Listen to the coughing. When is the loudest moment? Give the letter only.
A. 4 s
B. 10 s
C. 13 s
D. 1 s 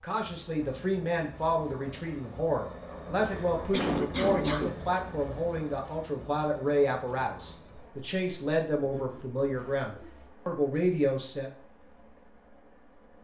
A.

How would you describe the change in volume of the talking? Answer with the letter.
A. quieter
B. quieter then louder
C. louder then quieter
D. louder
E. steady
E.